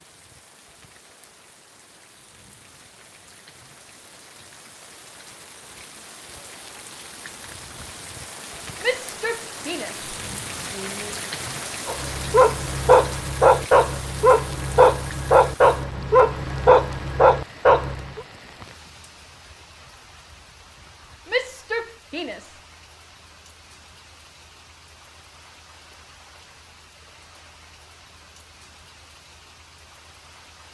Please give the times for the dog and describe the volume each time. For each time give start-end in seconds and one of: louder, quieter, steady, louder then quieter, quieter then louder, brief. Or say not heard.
11.8-18.2 steady.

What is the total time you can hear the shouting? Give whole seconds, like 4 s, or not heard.
4 s.